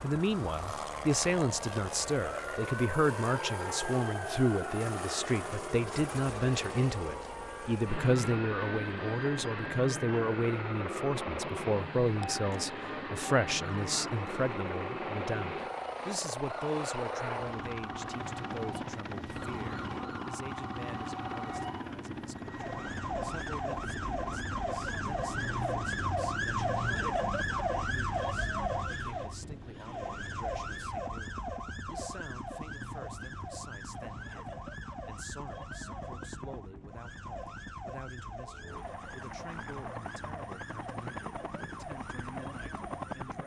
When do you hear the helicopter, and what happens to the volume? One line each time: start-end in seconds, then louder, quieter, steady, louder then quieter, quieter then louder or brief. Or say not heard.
0.0-43.4 quieter.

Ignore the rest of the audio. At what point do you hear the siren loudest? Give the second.
27 s.